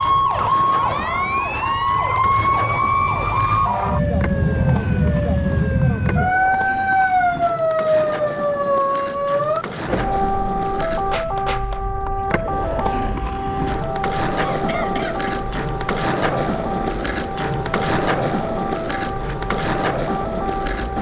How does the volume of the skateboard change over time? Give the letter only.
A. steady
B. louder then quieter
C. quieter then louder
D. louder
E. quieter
D.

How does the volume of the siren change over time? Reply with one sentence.
The volume of the siren goes down.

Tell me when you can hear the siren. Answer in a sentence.
The siren can be heard from 0.0 to 20.9 s.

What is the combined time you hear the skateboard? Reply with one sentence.
You can hear the skateboard for 21 seconds altogether.